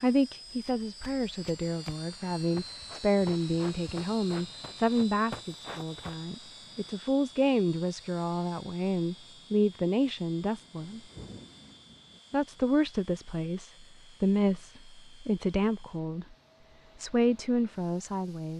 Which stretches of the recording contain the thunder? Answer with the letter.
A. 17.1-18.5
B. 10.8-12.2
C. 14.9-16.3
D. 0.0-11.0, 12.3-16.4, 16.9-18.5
B.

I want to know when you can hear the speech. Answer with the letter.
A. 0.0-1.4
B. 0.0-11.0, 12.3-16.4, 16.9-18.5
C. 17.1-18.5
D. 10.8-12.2
B.